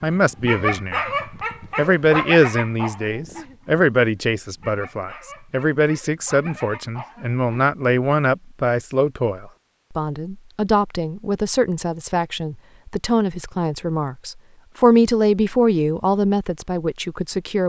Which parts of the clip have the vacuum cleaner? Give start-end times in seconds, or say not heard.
not heard.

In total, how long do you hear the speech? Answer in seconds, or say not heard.
17 s.